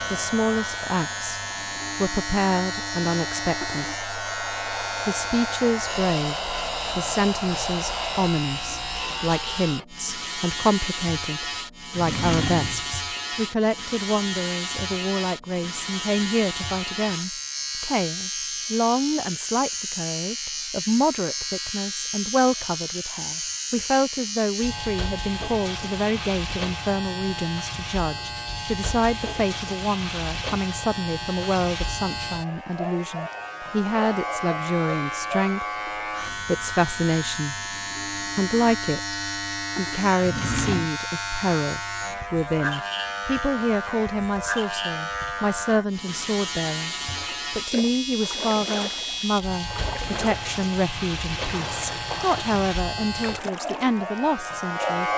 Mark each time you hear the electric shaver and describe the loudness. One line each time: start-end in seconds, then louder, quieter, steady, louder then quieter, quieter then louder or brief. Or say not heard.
0.0-55.1 steady.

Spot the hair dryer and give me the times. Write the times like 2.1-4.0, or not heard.
0.0-8.3.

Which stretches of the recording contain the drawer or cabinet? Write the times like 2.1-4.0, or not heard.
11.9-12.9, 40.2-40.9.